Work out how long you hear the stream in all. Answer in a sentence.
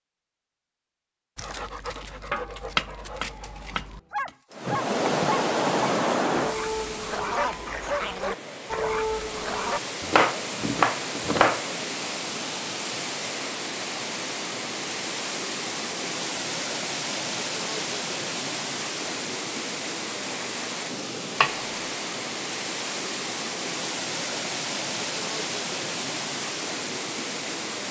You can hear the stream for 23 seconds altogether.